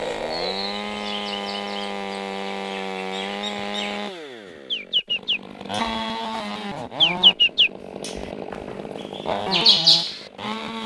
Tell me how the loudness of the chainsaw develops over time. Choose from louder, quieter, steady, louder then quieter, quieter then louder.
steady.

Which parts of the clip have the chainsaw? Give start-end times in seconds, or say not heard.
0.0-10.8.